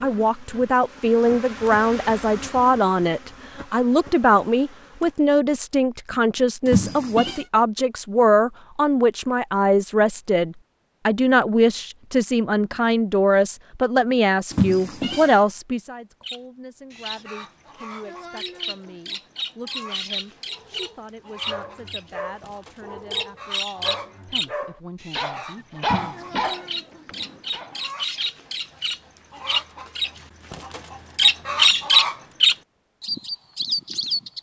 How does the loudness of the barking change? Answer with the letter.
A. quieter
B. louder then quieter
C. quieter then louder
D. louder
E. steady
D.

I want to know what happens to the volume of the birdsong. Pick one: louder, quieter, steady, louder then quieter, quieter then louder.
louder.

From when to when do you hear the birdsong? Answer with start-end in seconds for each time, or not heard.
16.2-34.3.